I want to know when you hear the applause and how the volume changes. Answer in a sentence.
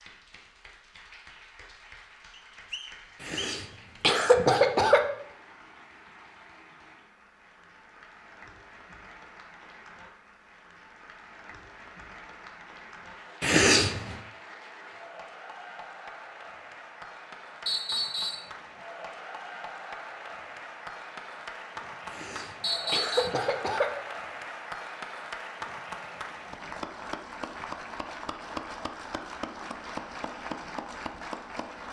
You can hear the applause from 0.0 to 31.8 s, getting louder.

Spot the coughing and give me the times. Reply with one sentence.
You can hear the coughing from 3.2 to 5.0 s, from 13.4 to 14.2 s and from 22.1 to 23.9 s.